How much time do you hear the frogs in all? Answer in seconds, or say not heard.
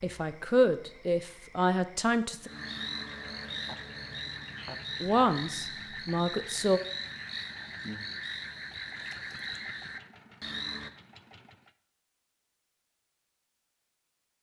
11 s.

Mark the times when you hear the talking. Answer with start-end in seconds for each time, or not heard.
0.0-2.5, 5.0-6.8.